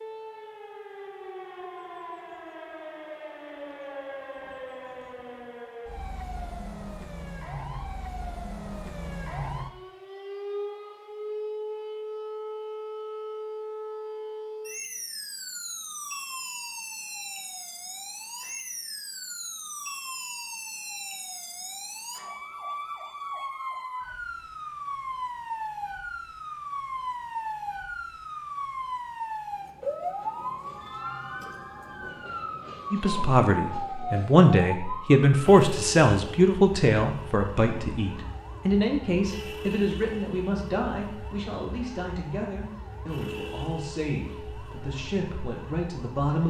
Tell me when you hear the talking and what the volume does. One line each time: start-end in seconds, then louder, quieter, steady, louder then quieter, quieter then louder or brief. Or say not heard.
32.9-46.4 quieter.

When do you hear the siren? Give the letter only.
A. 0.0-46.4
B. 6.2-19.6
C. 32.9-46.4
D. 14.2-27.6
A.